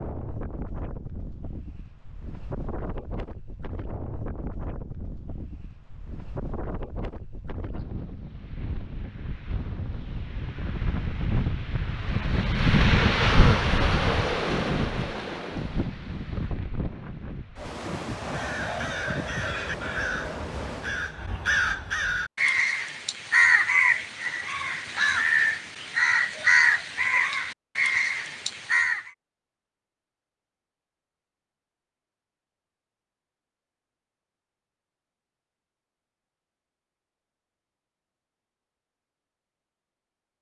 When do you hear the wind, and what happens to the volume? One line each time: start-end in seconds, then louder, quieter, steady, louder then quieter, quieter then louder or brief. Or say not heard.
0.0-21.2 louder then quieter.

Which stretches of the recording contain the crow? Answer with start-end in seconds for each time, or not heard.
18.3-29.1.